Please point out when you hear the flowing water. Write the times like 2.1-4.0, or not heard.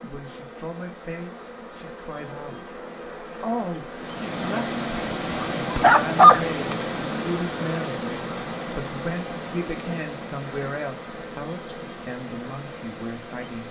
3.9-13.6.